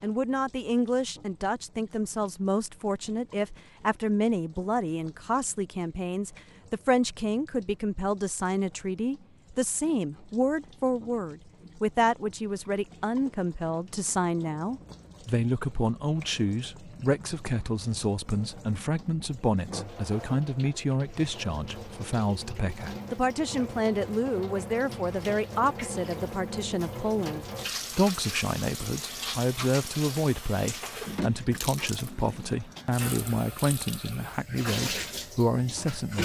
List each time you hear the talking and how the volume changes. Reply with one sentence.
You can hear the talking from 0.0 to 36.2 s, at a steady volume.